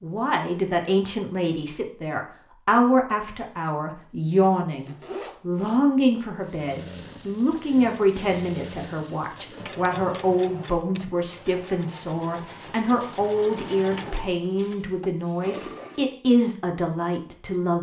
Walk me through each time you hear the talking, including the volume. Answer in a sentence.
You can hear the talking from 0.0 to 17.7 s, at a steady volume.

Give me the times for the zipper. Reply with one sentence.
The zipper can be heard from 4.7 to 5.4 s.